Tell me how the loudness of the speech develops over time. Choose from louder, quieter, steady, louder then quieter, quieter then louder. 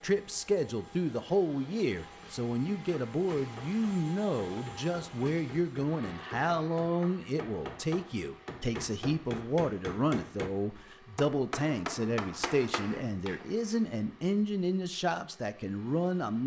steady.